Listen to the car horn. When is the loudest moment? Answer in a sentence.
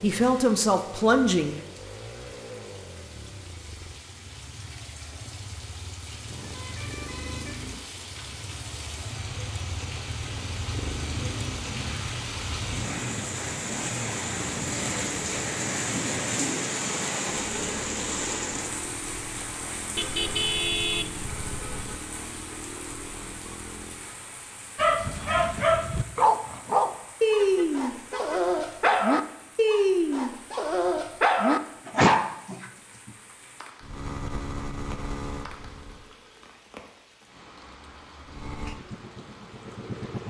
The volume of the car horn peaks at 21 seconds.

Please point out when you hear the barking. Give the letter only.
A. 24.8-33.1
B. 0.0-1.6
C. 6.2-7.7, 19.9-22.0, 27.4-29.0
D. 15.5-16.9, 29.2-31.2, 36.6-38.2
A.